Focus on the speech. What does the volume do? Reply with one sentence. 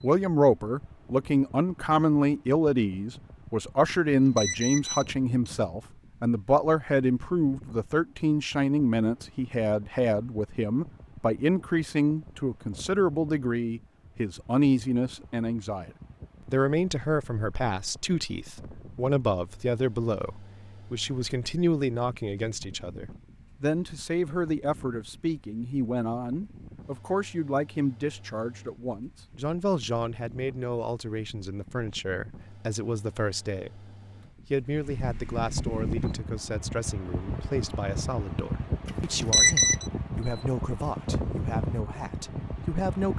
The loudness of the speech goes down.